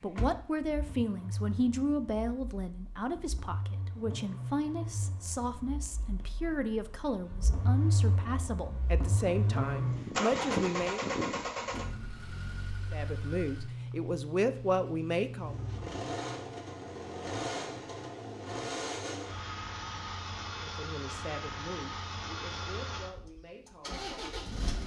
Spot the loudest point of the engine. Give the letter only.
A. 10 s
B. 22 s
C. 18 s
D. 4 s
A.